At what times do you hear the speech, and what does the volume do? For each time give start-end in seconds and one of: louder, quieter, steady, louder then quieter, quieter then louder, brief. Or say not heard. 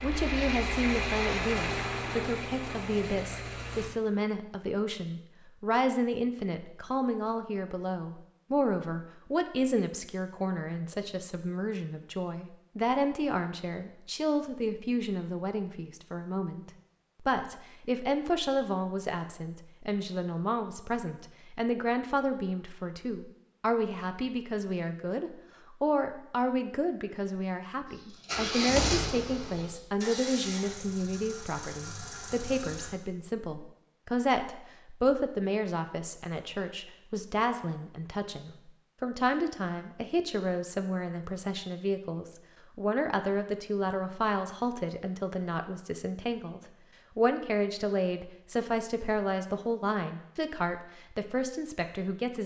0.0-52.4 steady.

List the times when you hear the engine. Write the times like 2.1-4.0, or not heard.
0.0-3.9, 27.9-32.9.